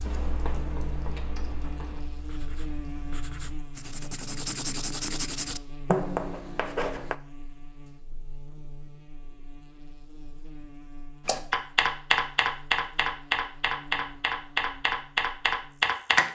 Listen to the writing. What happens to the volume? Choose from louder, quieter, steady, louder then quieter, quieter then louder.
quieter then louder.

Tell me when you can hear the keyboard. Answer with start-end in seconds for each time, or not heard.
0.0-3.4, 11.2-16.2.